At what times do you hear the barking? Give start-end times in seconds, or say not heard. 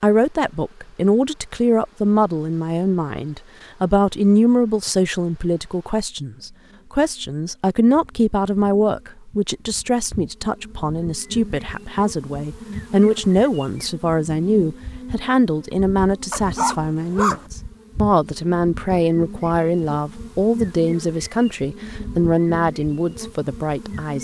16.3-17.4.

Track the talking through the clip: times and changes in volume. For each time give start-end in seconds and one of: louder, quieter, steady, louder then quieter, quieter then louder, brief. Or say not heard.
0.0-24.1 steady.